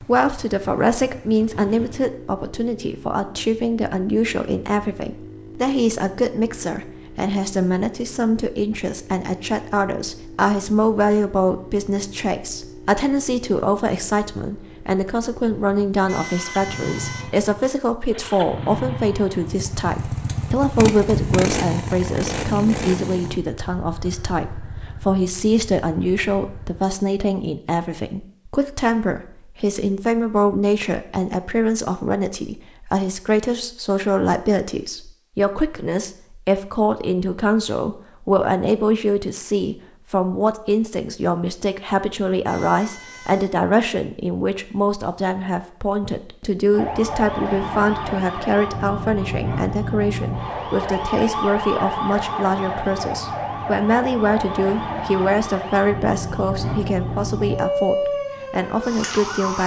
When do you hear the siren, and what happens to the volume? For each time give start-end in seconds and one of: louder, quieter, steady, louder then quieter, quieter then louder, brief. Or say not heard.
46.7-59.6 steady.